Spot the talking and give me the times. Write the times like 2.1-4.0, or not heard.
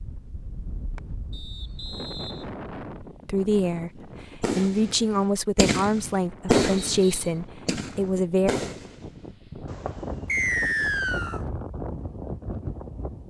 3.2-8.5.